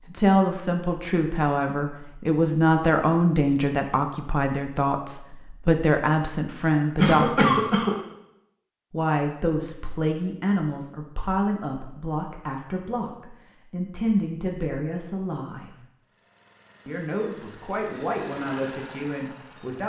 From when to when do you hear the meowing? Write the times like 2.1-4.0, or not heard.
not heard.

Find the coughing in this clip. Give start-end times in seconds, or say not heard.
6.5-8.0.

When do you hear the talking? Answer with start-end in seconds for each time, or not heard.
0.0-7.8, 8.9-15.7, 16.9-19.8.